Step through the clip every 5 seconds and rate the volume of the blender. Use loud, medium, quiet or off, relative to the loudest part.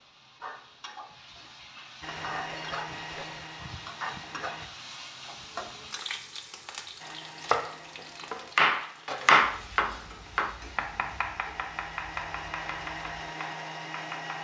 loud, medium, loud.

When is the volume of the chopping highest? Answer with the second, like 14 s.
9 s.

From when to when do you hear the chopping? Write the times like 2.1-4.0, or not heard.
7.4-14.4.